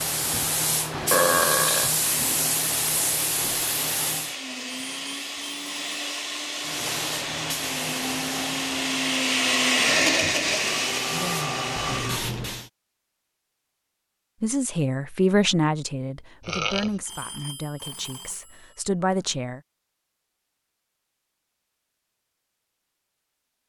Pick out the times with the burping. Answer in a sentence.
The burping can be heard from 1.1 to 1.9 s, from 10.6 to 12.2 s and from 16.4 to 16.9 s.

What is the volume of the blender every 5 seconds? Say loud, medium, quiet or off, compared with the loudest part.
medium, loud, loud, off, off.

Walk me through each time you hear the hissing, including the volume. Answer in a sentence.
You can hear the hissing from 0.0 to 4.3 s, at a steady volume; and from 6.6 to 12.7 s, getting quieter then louder.